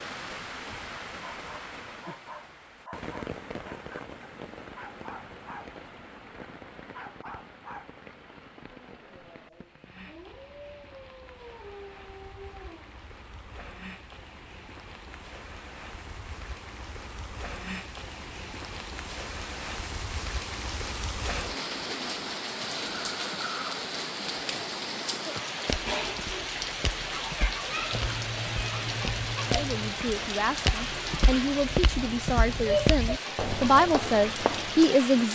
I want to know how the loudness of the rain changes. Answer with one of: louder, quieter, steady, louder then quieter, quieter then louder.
quieter then louder.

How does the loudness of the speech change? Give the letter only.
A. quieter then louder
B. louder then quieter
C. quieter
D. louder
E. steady
D.